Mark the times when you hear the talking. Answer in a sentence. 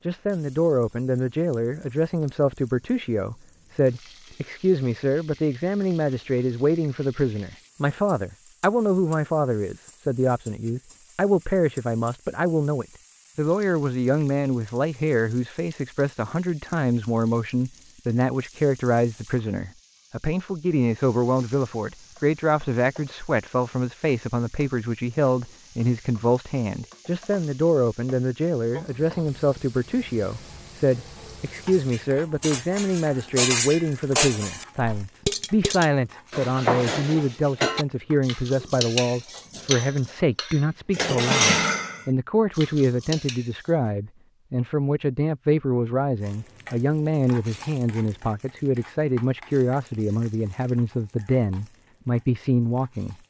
The talking can be heard from 0.1 to 53.1 s.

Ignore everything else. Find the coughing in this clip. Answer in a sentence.
You can't hear the coughing here.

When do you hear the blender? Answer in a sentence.
The blender can't be heard in this clip.